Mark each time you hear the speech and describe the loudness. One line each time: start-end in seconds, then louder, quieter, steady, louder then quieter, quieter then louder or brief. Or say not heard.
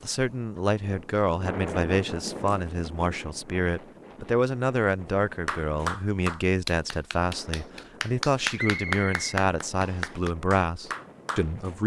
0.0-11.8 steady.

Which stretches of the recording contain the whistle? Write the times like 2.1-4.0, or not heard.
8.6-10.2.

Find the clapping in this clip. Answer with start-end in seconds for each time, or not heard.
5.5-11.4.